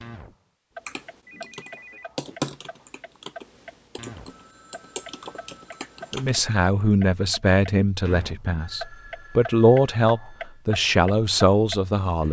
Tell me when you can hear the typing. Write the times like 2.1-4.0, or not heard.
0.8-6.5.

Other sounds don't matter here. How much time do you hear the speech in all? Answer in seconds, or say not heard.
6 s.